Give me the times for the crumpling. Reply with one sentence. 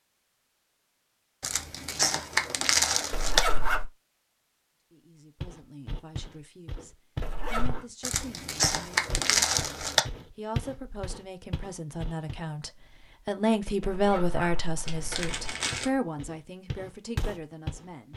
You can hear the crumpling from 1.4 to 3.4 s, from 8.0 to 10.0 s and from 14.8 to 15.9 s.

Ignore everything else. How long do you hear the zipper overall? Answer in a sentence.
You can hear the zipper for 3 seconds altogether.